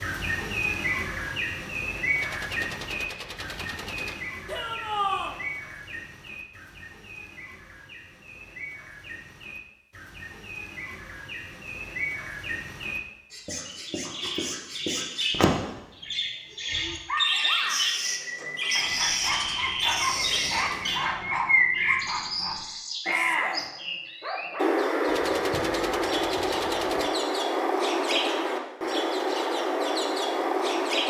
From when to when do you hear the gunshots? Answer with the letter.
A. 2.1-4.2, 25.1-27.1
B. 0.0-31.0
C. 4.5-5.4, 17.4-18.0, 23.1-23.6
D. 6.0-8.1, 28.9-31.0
A.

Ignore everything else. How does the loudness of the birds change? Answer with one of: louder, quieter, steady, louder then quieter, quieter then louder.
quieter then louder.